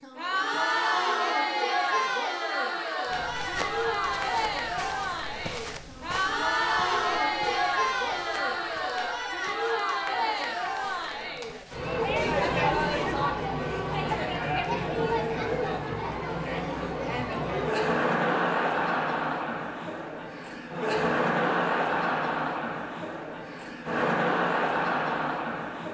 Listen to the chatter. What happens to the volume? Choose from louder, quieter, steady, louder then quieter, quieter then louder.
steady.